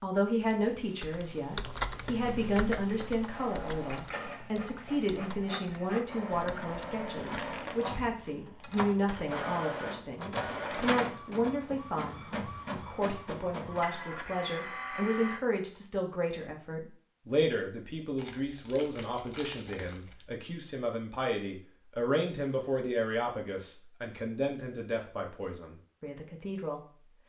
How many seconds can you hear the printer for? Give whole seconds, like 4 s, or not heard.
12 s.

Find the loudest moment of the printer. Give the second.
11 s.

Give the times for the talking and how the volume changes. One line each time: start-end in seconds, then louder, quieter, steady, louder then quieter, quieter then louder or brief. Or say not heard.
0.0-26.8 steady.